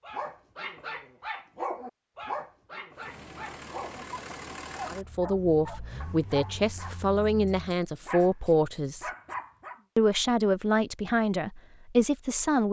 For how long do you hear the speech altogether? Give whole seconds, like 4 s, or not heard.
7 s.